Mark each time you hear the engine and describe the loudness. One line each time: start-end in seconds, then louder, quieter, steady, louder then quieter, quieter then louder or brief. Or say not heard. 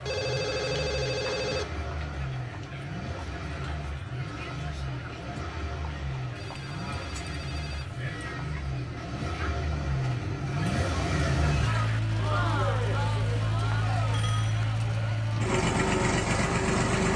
0.0-17.1 louder.